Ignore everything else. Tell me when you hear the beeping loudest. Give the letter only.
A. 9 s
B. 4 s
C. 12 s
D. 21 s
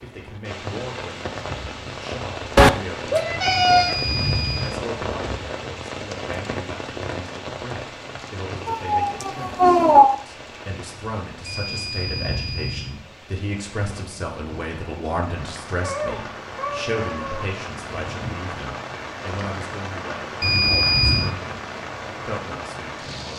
D.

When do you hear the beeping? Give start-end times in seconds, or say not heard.
3.4-4.8, 11.4-12.9, 20.4-21.3.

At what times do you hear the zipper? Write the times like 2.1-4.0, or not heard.
not heard.